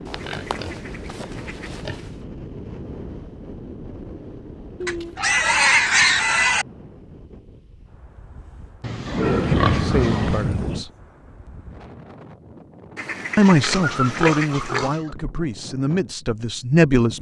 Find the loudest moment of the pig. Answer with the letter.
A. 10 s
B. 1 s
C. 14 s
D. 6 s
D.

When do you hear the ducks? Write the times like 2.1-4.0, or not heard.
0.2-1.8, 4.8-6.5, 9.2-10.8, 12.9-14.9.